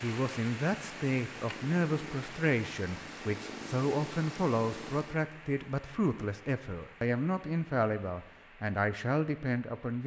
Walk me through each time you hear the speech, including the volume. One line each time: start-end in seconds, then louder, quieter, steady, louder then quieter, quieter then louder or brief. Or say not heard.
0.0-10.0 steady.